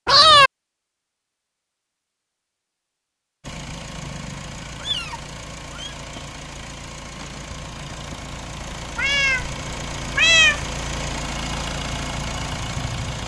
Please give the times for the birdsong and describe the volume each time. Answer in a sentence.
The birdsong can't be heard in this clip.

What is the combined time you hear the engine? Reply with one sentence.
The engine can be heard for 10 seconds in total.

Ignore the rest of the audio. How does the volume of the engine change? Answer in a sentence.
The loudness of the engine goes up.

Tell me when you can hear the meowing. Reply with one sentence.
The meowing can be heard from 0.1 to 0.5 s, from 4.7 to 6.0 s, from 8.9 to 9.6 s and from 10.2 to 10.7 s.